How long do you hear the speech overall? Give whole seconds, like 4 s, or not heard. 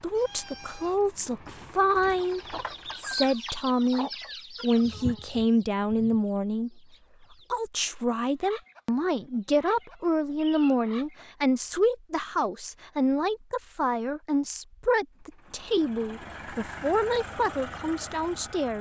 18 s.